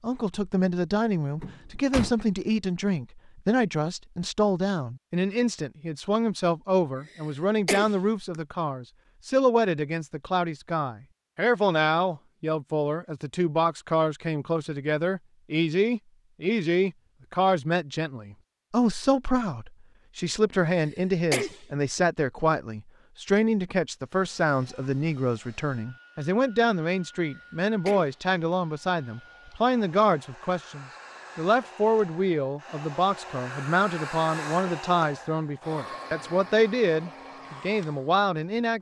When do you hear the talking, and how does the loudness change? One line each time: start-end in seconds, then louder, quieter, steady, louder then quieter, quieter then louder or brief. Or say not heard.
0.0-38.7 steady.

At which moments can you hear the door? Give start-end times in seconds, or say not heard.
1.4-2.1.